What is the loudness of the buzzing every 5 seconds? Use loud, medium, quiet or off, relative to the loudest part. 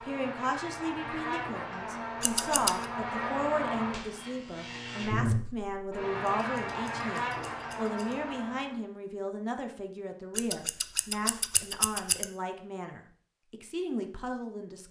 loud, loud, off.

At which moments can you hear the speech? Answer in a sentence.
The speech can be heard from 0.0 to 14.8 s.